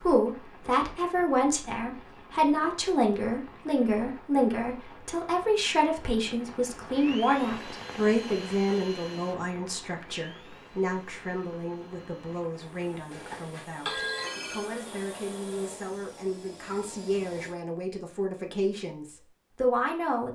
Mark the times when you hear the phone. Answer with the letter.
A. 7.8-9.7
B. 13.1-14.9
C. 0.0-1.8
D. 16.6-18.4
B.